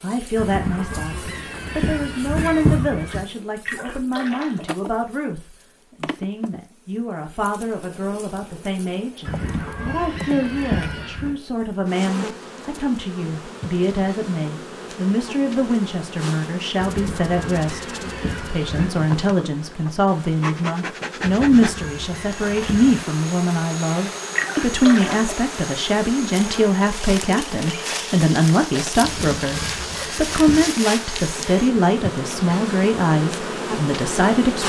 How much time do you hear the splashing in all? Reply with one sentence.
You can hear the splashing for 2 seconds altogether.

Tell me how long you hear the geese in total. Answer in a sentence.
You can hear the geese for 11 seconds altogether.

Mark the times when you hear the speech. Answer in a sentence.
You can hear the speech from 0.0 to 34.6 s.